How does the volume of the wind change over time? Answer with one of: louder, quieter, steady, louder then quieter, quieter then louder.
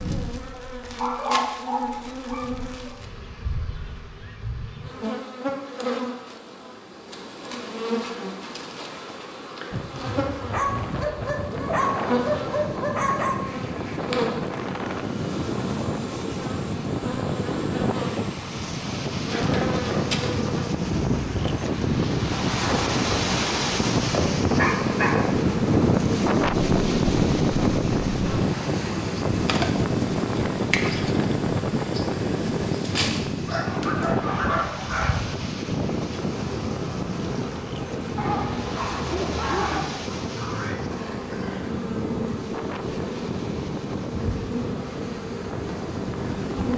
louder then quieter.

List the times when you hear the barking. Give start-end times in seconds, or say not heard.
0.9-3.0, 10.5-13.4, 24.6-25.4, 33.5-35.2, 38.1-39.9.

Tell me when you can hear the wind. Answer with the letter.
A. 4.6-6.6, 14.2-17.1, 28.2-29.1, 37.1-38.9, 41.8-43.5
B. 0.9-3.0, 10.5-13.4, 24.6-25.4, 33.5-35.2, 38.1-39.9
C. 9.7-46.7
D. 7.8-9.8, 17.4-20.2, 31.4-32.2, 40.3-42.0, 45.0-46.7
C.